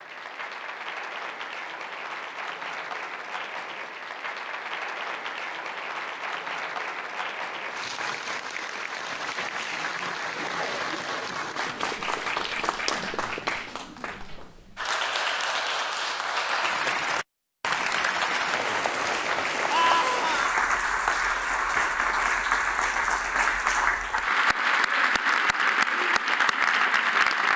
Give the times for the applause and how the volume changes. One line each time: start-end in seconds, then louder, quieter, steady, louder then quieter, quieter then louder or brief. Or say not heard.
0.0-27.5 louder.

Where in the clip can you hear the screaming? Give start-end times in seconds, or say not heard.
19.7-20.6.